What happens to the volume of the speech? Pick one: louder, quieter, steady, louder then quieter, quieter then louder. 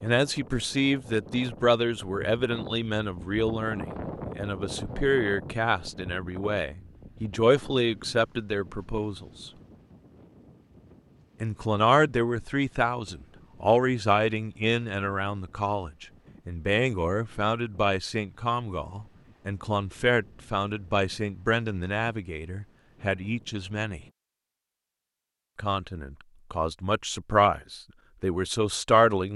steady.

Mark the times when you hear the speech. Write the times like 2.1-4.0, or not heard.
0.0-9.5, 11.4-24.0, 25.6-29.3.